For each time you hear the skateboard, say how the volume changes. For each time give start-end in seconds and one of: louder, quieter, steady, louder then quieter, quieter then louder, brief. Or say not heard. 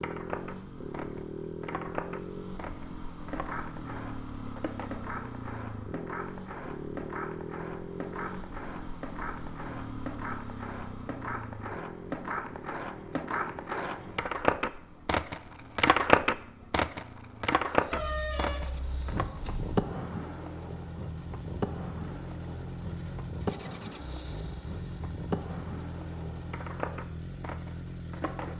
0.0-28.5 louder then quieter.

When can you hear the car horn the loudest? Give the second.
18 s.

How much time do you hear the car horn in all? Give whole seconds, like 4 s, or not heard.
2 s.